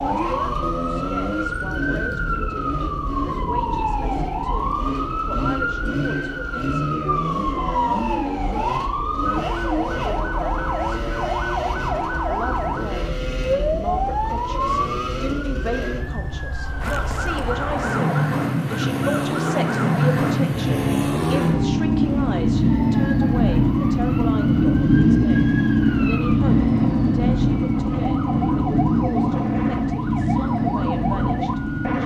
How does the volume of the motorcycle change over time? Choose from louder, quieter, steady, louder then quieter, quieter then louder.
louder.